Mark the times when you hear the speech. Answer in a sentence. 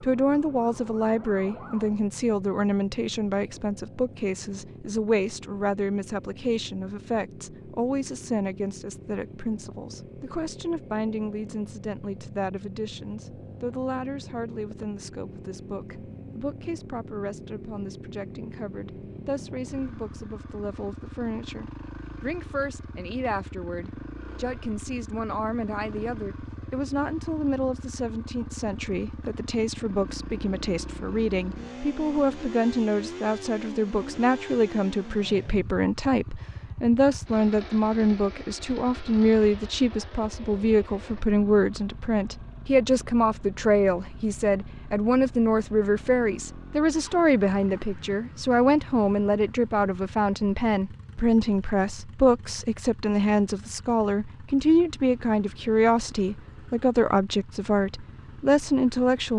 The speech can be heard from 0.0 to 59.3 s.